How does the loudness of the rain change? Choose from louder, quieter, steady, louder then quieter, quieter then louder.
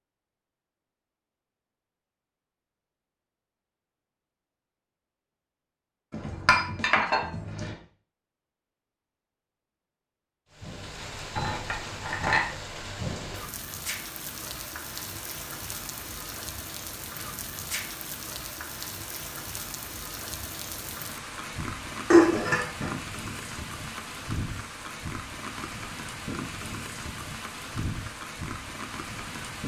steady.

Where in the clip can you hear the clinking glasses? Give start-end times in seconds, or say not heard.
6.1-7.8, 11.3-12.4, 22.1-22.9.